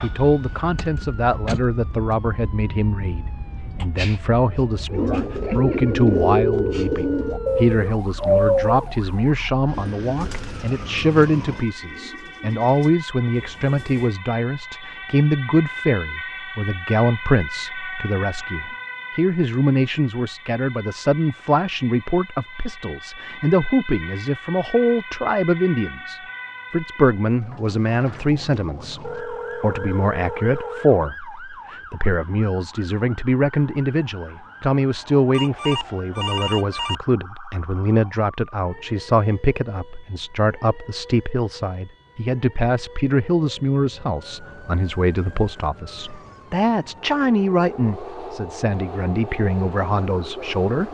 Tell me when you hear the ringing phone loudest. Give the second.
36 s.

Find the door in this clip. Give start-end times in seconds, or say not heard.
0.8-1.7.